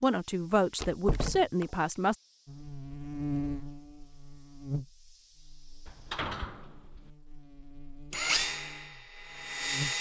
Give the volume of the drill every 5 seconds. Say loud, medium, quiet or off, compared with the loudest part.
off, loud.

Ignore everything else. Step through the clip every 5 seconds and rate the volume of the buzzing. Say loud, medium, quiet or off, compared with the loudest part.
loud, medium.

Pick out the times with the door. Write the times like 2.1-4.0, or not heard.
0.8-1.6, 5.8-7.1.